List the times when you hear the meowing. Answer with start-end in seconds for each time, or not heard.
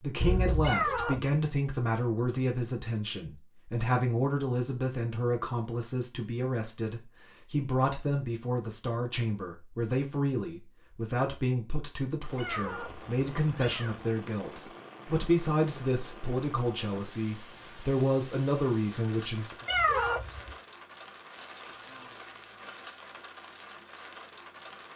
0.6-1.4, 12.3-14.1, 19.6-20.6.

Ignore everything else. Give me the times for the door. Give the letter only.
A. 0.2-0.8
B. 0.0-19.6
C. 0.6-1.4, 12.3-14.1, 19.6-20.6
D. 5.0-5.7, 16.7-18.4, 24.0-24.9
A.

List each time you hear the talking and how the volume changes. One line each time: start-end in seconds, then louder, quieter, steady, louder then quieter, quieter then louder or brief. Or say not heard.
0.0-19.6 steady.